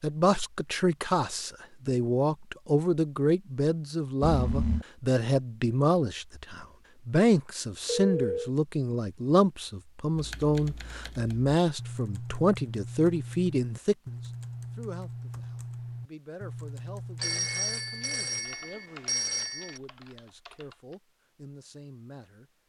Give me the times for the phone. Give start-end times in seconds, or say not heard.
4.2-4.8, 7.8-8.5, 17.2-19.8.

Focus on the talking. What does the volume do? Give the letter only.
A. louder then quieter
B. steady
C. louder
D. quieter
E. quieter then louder
D.